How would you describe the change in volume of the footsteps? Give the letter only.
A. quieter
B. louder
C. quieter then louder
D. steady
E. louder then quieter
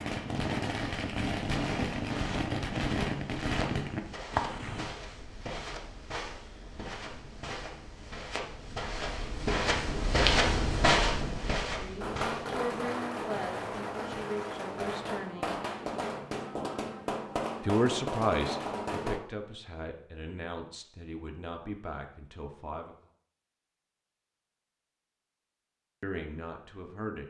B.